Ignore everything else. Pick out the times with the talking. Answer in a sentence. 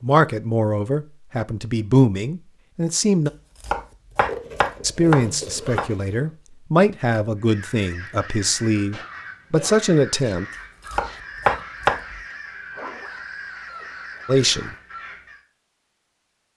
The talking can be heard from 0.0 to 3.3 s, from 4.8 to 10.4 s and from 14.2 to 14.7 s.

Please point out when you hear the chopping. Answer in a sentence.
The chopping can be heard from 3.6 to 5.9 s and from 10.9 to 12.2 s.